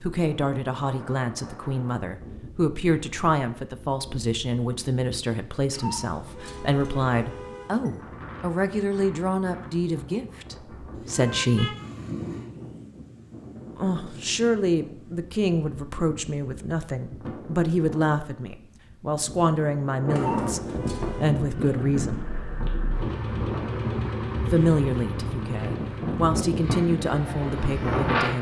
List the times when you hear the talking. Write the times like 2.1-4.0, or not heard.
0.0-11.8, 13.8-22.2, 24.5-28.3.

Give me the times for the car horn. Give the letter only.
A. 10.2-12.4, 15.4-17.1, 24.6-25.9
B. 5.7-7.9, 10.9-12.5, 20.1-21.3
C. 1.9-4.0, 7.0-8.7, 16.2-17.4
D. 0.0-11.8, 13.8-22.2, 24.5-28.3
B.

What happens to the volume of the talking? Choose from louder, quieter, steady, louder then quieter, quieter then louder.
steady.